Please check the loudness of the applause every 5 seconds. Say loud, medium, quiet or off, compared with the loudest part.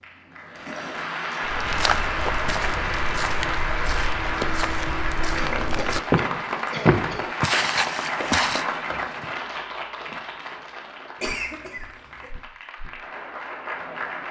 loud, loud, medium.